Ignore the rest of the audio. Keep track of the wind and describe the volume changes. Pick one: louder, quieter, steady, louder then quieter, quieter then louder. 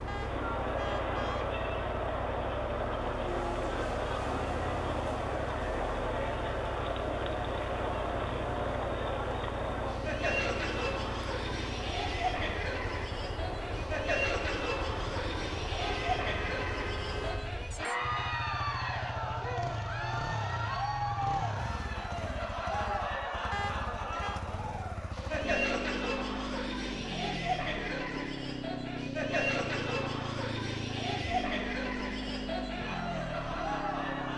steady.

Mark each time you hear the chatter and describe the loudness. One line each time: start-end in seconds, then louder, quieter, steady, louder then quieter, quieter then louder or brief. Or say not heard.
0.1-34.3 steady.